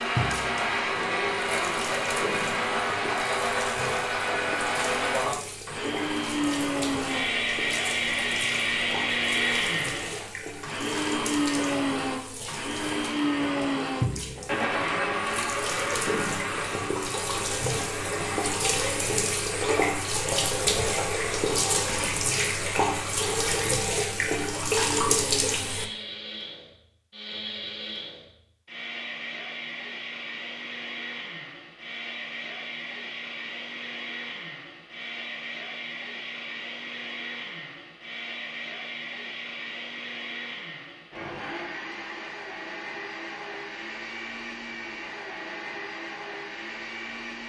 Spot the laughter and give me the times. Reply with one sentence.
The laughter can't be heard in this clip.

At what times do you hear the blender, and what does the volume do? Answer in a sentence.
You can hear the blender from 0.0 to 47.4 s, getting quieter.